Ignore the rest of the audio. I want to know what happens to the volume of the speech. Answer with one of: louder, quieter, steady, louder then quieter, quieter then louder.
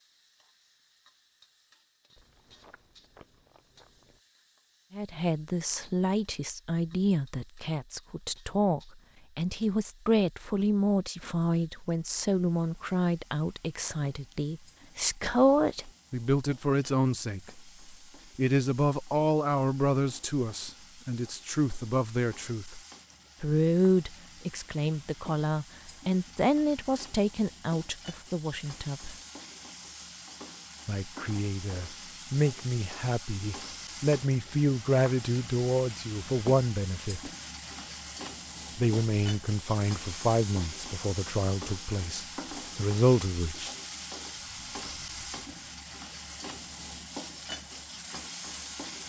steady.